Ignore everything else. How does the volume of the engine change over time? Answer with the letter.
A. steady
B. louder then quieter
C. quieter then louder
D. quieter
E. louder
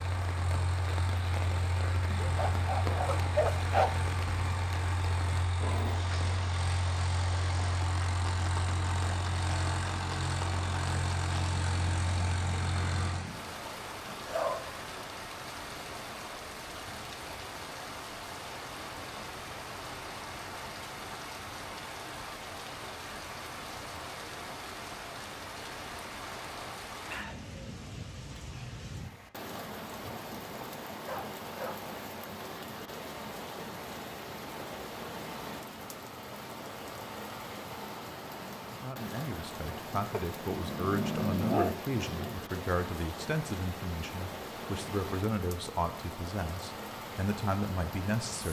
A.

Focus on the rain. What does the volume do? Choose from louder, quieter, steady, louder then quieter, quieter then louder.
steady.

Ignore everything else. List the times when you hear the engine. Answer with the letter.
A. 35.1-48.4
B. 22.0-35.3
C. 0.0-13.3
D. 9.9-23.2
C.